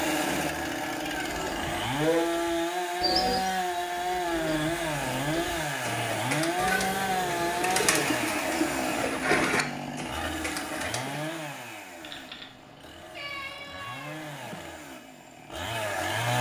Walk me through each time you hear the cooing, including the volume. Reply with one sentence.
You can hear the cooing from 1.2 to 11.6 s, getting quieter then louder.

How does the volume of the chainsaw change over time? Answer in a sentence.
The volume of the chainsaw goes down.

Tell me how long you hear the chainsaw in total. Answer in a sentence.
The chainsaw can be heard for 16 seconds in total.